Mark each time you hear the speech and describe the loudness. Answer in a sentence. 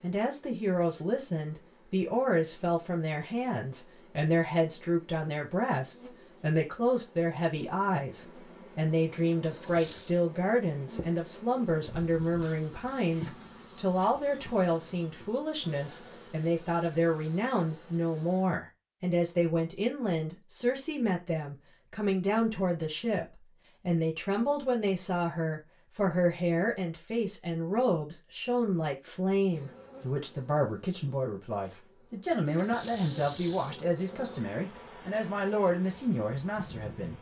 The speech can be heard from 0.0 to 37.1 s, at a steady volume.